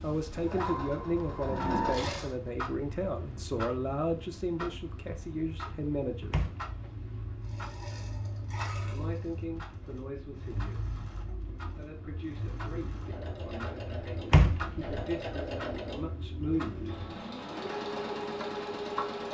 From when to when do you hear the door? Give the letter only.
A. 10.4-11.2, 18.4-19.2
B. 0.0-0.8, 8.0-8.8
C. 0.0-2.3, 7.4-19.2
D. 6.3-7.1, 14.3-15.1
D.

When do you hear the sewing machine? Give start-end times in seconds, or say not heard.
0.0-2.3, 7.4-19.2.